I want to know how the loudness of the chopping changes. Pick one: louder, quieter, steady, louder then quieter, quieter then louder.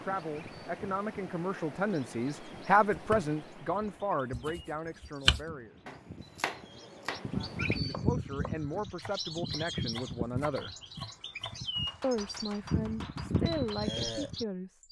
quieter.